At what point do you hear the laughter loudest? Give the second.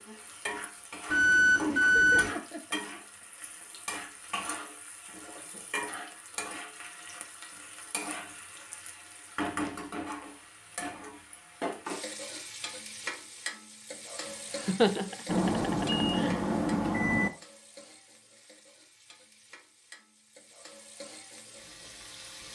15 s.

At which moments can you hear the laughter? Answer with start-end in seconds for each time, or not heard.
1.6-3.4, 14.7-16.4.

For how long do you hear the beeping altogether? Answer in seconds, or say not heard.
3 s.